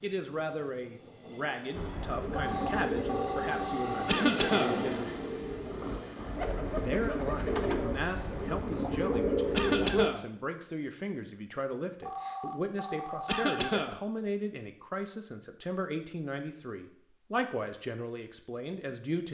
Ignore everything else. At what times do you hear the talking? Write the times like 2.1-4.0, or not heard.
0.0-5.0, 6.8-19.2.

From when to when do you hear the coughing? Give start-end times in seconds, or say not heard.
4.0-4.8, 9.5-10.2, 13.2-14.0.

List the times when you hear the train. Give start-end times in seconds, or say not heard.
0.0-9.1.